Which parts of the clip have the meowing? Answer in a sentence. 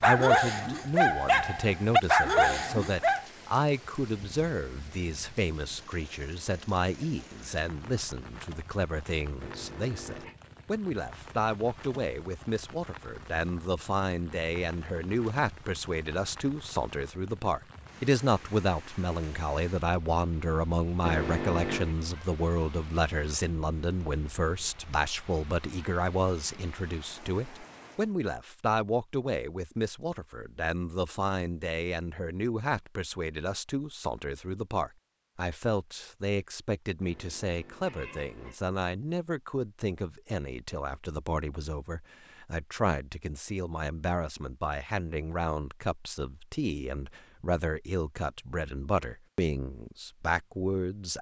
You can hear the meowing from 9.4 to 10.3 s, from 21.0 to 21.9 s and from 37.0 to 38.6 s.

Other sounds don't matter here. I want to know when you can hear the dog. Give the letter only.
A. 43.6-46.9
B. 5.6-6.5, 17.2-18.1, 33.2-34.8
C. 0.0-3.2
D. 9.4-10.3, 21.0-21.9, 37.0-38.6
C.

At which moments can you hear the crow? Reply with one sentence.
The crow can't be heard in this clip.